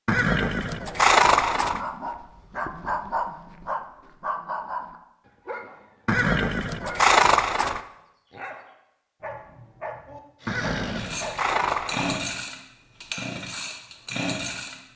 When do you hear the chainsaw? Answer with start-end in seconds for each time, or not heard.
10.4-14.8.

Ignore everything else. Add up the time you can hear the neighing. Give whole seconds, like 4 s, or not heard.
5 s.